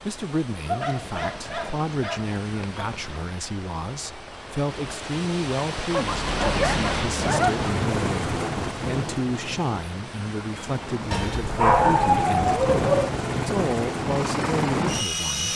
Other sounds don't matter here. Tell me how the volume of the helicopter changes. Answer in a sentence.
The volume of the helicopter goes down, then up.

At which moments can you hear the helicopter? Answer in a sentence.
The helicopter can be heard from 6.0 to 15.5 s.